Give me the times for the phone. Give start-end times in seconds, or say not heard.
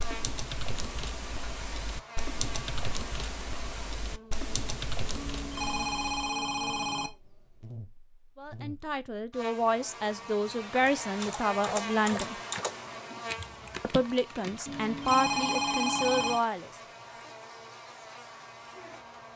5.2-7.1, 14.7-16.4.